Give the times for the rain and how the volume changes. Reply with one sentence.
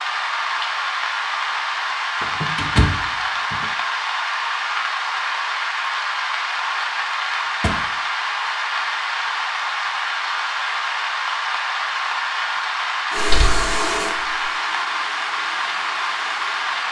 You can hear the rain from 0.0 to 16.8 s, at a steady volume.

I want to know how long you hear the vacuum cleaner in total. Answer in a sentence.
The vacuum cleaner can be heard for 4 seconds in total.